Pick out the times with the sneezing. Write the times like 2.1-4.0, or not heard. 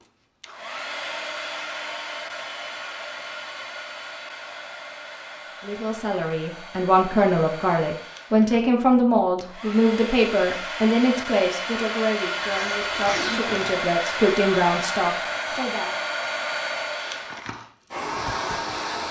12.4-13.8.